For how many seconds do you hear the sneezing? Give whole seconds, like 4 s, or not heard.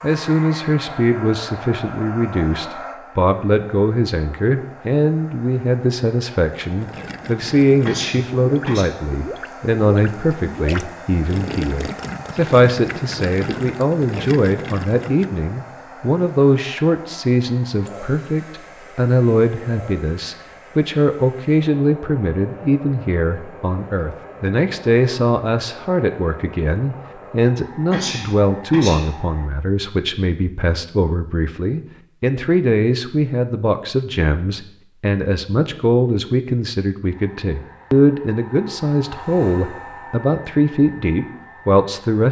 2 s.